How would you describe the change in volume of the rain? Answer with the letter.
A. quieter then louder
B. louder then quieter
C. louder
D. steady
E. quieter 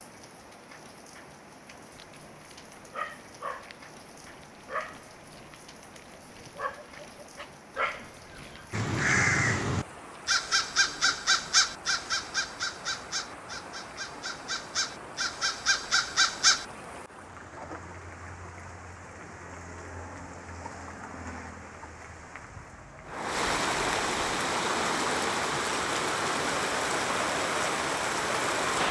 C.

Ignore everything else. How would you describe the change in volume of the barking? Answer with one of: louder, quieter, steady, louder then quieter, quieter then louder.
quieter then louder.